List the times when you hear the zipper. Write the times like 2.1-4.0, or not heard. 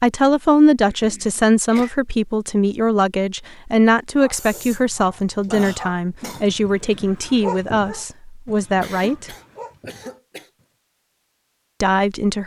not heard.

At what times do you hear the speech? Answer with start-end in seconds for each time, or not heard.
0.0-9.3, 11.8-12.4.